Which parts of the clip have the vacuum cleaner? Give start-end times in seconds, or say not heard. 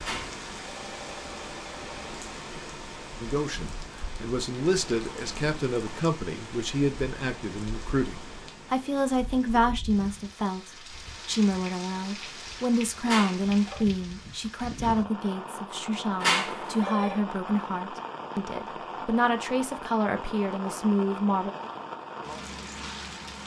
not heard.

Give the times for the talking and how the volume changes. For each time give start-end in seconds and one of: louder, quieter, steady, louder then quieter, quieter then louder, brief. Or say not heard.
3.2-21.5 steady.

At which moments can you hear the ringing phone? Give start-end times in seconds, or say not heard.
0.0-2.2, 13.1-13.8, 16.2-17.2.